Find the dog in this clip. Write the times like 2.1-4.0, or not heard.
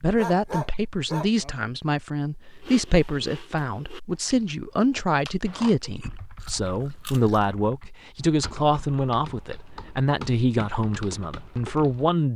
0.1-1.6.